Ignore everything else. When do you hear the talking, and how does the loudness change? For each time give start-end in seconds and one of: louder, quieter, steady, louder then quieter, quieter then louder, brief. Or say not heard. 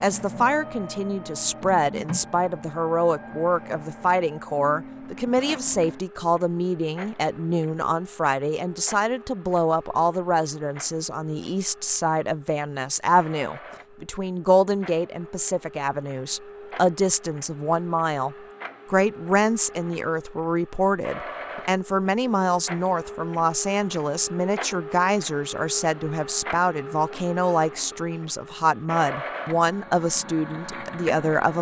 0.0-31.5 steady.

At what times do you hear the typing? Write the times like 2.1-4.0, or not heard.
not heard.